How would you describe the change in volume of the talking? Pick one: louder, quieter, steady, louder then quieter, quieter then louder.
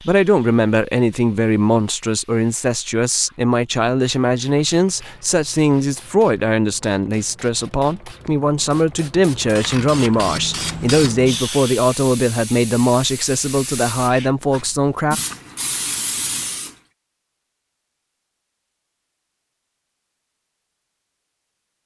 steady.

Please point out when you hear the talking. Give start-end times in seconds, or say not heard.
0.0-15.2.